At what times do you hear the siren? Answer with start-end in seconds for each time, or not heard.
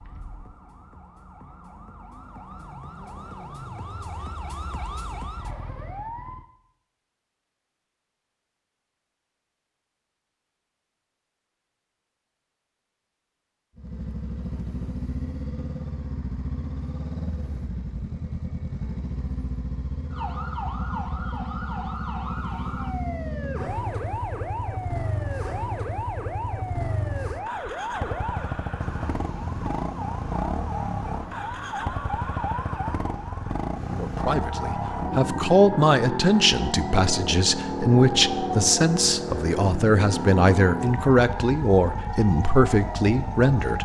0.0-6.5, 20.1-43.7.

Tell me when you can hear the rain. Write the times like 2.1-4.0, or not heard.
not heard.